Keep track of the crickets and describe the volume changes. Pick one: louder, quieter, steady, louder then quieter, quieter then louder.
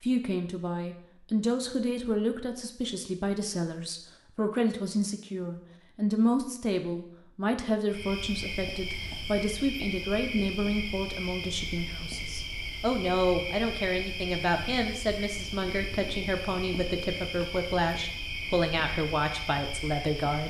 steady.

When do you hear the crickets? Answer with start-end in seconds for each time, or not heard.
7.8-20.4.